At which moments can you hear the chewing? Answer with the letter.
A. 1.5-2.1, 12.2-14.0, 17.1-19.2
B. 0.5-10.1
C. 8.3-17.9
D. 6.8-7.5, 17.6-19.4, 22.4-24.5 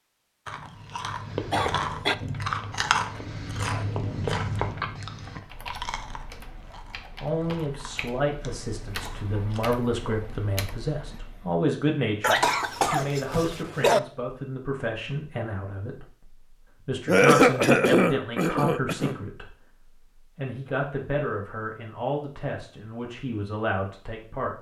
B.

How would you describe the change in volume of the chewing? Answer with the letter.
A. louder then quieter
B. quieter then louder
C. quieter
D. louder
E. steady
C.